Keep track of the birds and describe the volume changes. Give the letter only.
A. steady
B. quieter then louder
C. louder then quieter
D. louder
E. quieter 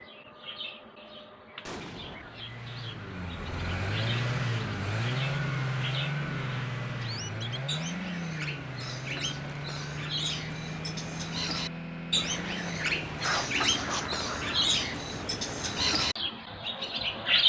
D.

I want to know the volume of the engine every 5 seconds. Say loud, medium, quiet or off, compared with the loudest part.
loud, loud, medium, off.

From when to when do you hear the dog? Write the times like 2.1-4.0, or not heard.
13.2-14.6.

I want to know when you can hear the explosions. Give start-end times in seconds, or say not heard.
1.6-2.5.